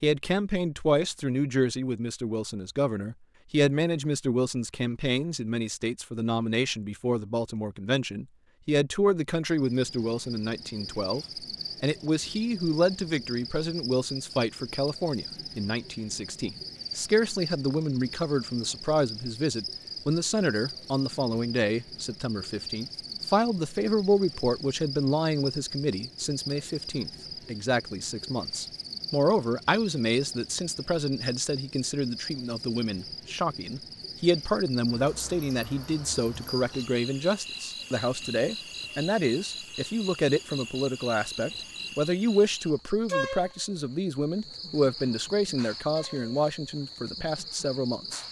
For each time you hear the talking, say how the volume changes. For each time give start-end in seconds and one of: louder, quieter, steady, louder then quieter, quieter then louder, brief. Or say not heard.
0.0-48.2 steady.